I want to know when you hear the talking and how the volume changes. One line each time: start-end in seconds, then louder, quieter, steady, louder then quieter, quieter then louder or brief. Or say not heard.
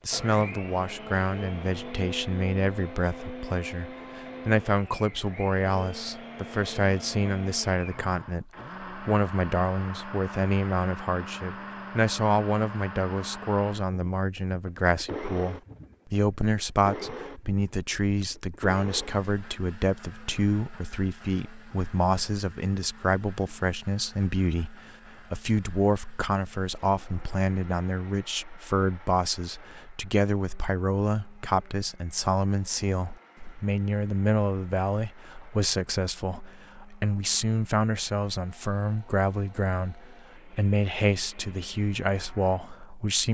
0.1-43.3 steady.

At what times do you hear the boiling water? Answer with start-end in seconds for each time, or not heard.
not heard.